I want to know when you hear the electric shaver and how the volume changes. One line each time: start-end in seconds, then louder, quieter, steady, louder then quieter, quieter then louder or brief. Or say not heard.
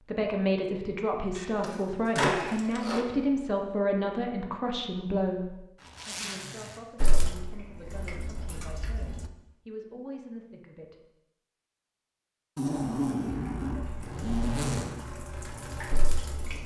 not heard.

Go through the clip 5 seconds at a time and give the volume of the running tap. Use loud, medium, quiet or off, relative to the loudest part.
off, loud, medium, loud.